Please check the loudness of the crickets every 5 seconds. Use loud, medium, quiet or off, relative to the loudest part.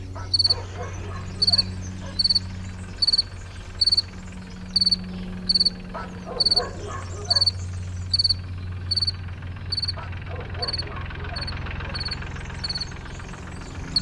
loud, loud, medium.